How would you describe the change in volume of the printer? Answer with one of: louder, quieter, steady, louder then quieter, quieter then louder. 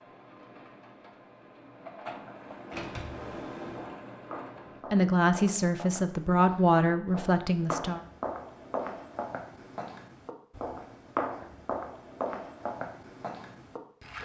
louder.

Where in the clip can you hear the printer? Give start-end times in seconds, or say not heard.
0.0-4.8.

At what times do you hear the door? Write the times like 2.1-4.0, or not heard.
2.6-3.9.